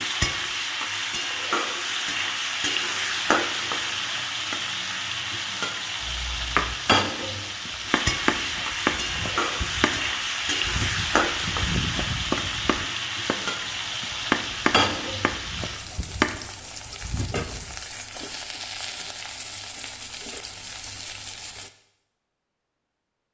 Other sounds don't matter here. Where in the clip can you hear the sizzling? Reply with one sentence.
You can hear the sizzling from 0.0 to 21.7 s.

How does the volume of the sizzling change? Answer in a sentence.
The loudness of the sizzling goes down.